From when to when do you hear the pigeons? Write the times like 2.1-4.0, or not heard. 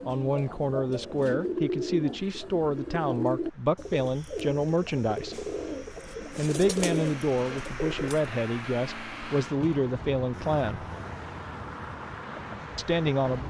0.0-8.2.